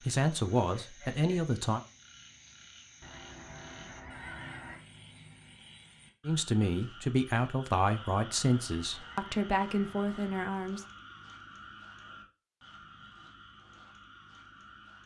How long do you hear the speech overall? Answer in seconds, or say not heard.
6 s.